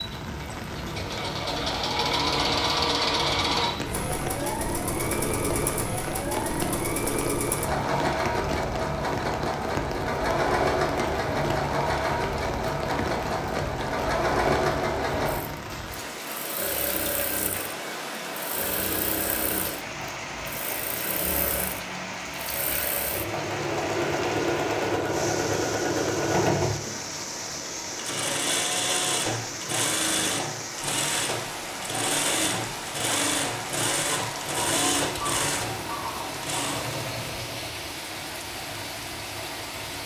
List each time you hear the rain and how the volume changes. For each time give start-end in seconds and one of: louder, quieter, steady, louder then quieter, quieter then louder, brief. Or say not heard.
0.0-40.0 steady.